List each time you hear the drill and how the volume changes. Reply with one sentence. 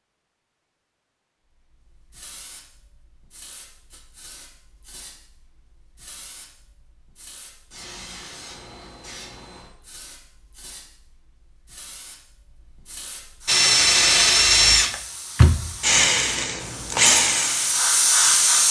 The drill can be heard from 13.4 to 18.6 s, getting quieter.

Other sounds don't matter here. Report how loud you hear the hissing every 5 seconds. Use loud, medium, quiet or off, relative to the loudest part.
quiet, quiet, quiet, loud.